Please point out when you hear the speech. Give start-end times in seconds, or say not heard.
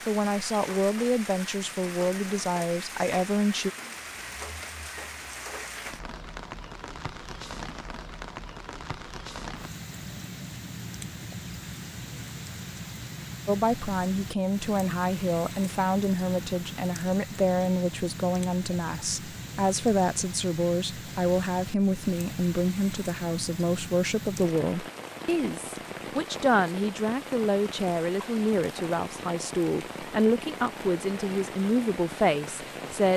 0.1-3.7, 13.4-33.1.